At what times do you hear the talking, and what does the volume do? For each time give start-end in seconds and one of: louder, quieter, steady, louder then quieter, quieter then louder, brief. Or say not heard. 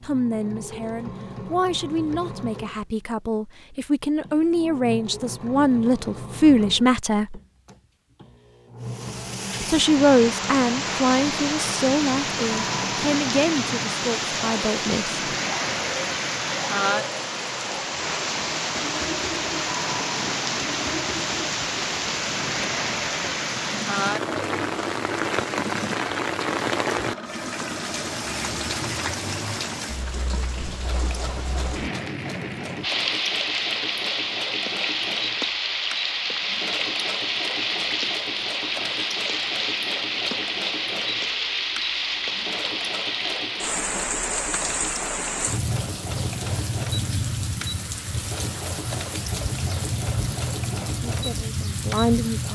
0.0-7.4 louder
9.7-15.2 quieter
51.0-52.5 brief.